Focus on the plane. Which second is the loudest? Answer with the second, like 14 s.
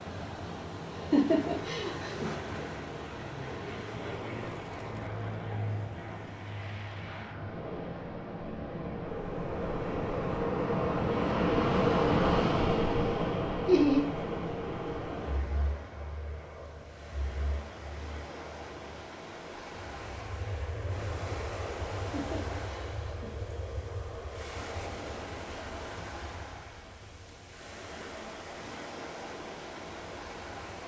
12 s.